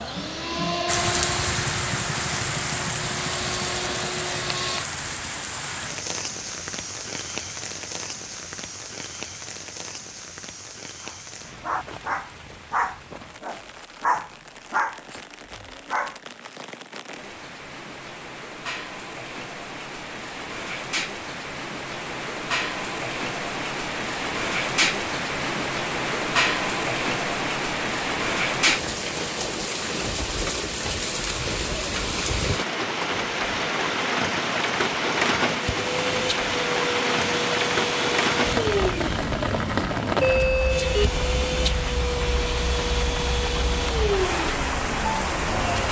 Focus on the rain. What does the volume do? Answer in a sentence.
The volume of the rain goes down, then up.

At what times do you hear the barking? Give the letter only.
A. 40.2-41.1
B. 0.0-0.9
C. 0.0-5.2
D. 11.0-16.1
D.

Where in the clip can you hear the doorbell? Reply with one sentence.
You can hear the doorbell from 40.2 to 41.1 s.